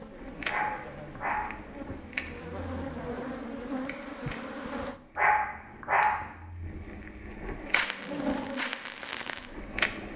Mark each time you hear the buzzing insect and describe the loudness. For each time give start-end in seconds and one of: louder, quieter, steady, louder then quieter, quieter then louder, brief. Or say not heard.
0.0-5.0 louder
7.5-9.9 brief.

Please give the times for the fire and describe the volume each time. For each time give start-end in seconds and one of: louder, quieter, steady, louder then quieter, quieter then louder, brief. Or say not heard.
0.1-10.1 quieter then louder.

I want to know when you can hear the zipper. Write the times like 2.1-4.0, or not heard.
not heard.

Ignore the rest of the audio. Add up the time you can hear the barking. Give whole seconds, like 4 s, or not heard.
2 s.